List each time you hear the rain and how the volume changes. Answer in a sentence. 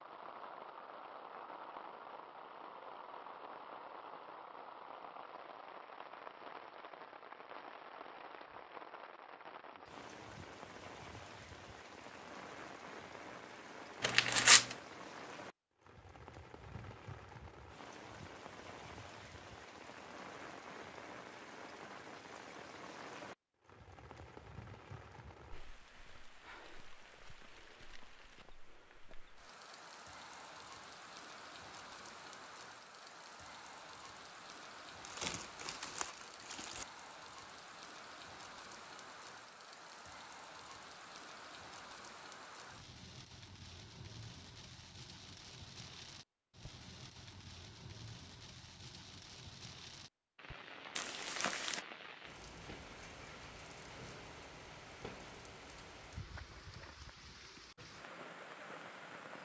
The rain can be heard from 0.0 to 59.4 s, at a steady volume.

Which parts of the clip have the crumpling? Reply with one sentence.
You can hear the crumpling from 14.0 to 14.8 s, from 35.0 to 36.9 s and from 51.0 to 51.9 s.